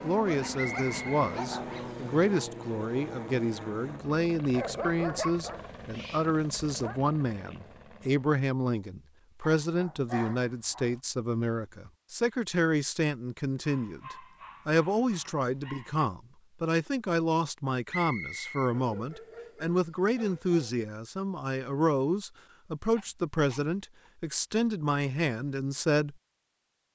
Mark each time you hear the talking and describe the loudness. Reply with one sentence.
The talking can be heard from 0.0 to 26.1 s, at a steady volume.